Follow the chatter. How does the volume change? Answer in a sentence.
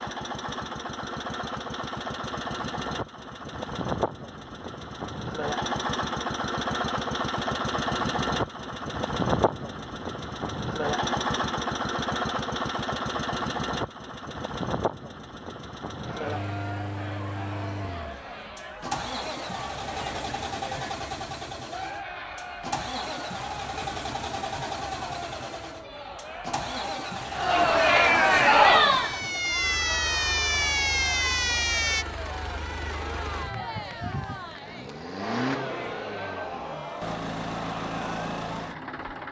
The volume of the chatter goes up, then down.